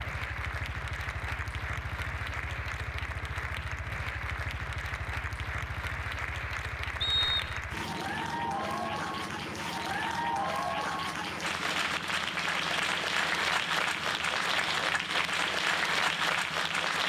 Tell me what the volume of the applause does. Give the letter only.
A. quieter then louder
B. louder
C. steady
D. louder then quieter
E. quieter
B.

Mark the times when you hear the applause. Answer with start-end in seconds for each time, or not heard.
0.0-17.0.